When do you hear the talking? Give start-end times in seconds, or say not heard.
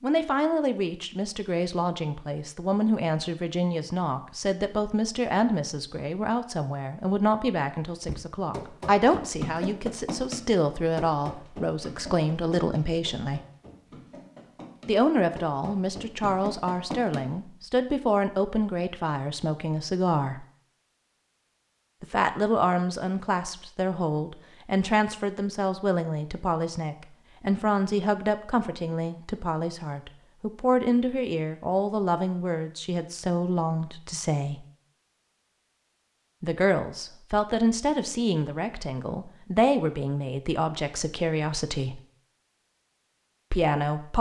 0.0-13.4, 14.8-20.4, 22.0-34.6, 36.4-42.0, 43.5-44.1.